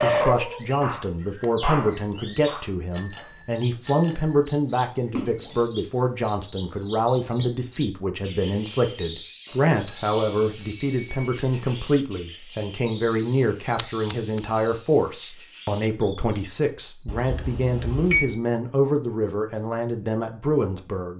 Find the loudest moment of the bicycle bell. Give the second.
18 s.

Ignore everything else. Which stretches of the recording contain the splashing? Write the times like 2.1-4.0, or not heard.
5.2-5.7, 13.8-14.4.